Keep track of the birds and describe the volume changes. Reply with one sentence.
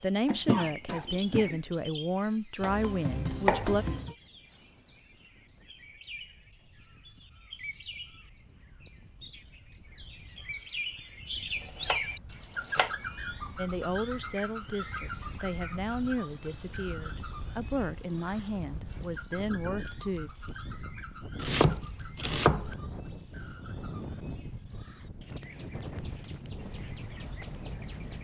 The volume of the birds goes up, then down.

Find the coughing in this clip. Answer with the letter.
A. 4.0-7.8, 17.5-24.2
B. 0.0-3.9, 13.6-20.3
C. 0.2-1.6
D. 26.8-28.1
C.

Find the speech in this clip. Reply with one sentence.
You can hear the speech from 0.0 to 3.9 s and from 13.6 to 20.3 s.